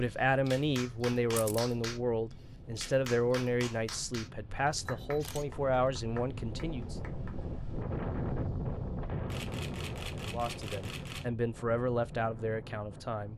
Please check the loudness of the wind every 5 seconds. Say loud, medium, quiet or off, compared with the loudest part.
quiet, loud, medium.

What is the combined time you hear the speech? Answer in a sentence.
The speech can be heard for 10 seconds in total.